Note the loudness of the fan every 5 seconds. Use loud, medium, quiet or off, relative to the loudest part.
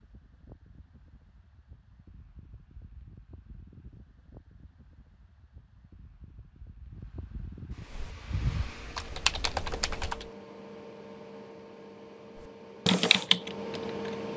quiet, loud, loud.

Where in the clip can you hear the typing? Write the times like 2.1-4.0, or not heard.
7.8-10.2, 12.8-14.2.